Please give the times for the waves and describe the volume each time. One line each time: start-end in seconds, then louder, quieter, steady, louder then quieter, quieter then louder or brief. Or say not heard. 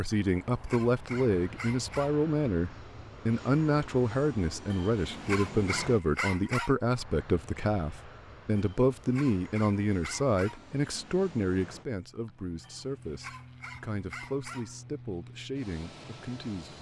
not heard.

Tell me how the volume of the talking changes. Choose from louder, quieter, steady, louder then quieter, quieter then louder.
quieter.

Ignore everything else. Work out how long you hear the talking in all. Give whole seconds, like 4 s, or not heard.
17 s.